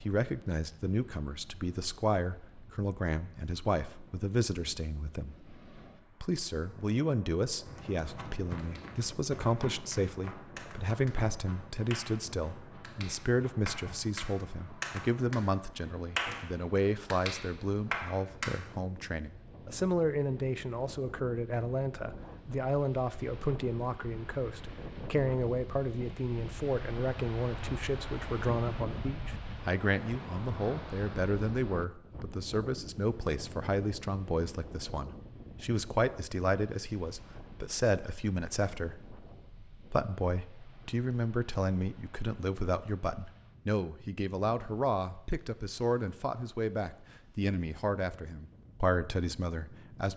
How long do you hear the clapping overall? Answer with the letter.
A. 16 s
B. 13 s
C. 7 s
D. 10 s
D.